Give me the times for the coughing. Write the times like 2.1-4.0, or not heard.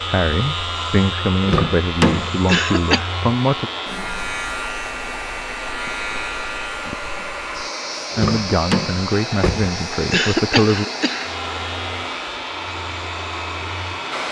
2.5-3.1, 10.1-11.3.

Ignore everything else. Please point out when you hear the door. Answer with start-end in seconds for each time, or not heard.
1.4-2.4, 8.1-9.7.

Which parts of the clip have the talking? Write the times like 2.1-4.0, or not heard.
0.0-3.7, 8.2-10.8.